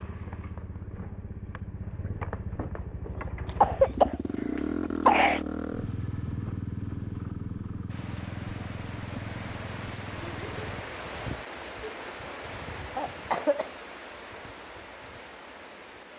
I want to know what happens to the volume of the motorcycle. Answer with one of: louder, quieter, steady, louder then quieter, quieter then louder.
louder then quieter.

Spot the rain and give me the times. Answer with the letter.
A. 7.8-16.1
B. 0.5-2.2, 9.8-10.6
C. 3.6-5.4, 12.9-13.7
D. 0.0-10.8
A.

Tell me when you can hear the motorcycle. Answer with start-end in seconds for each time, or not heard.
0.0-10.8.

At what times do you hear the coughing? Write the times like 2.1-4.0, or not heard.
3.6-5.4, 12.9-13.7.